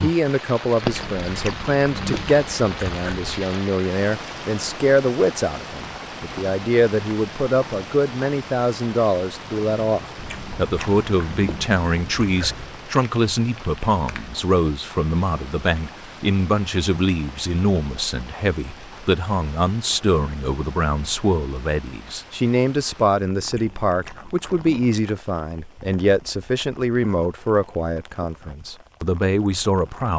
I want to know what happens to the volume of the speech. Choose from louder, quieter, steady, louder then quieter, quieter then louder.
steady.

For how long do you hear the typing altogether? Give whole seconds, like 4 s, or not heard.
not heard.